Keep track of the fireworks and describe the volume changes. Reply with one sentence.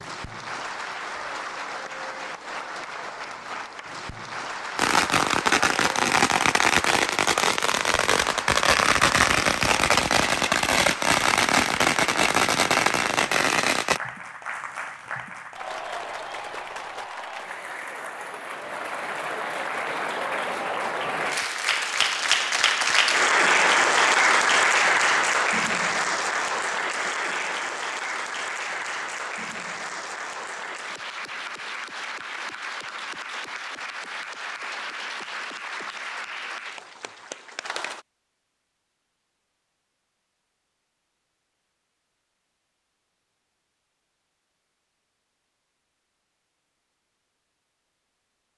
The volume of the fireworks stays about the same.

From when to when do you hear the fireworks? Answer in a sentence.
The fireworks can be heard from 4.8 to 14.0 s.